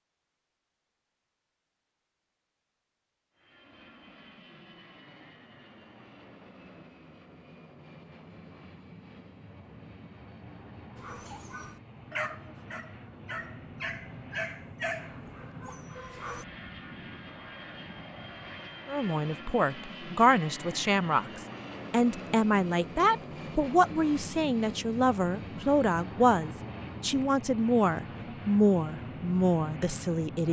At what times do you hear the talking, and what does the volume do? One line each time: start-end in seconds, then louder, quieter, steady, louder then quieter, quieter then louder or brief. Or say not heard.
18.9-30.4 steady.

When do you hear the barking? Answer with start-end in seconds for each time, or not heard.
10.9-16.4.